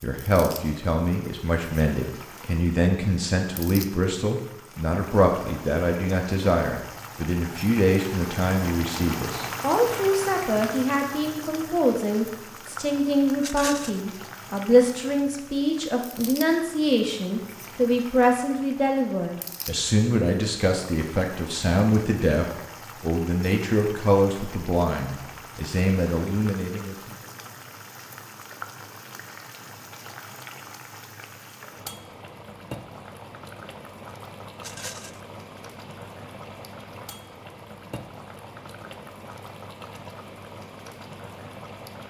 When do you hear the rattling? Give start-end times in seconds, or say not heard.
13.4-14.0, 34.6-35.2.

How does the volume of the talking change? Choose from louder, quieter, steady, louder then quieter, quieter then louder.
steady.